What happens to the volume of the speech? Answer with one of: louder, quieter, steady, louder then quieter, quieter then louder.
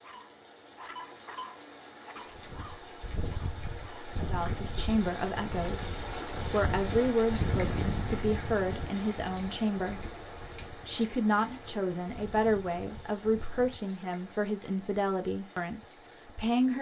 steady.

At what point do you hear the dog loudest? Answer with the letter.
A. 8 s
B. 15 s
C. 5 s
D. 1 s
D.